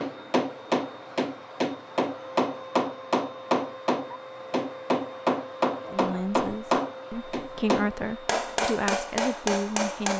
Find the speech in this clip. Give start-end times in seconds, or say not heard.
5.9-10.1.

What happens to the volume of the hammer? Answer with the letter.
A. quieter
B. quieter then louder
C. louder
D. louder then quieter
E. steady
E.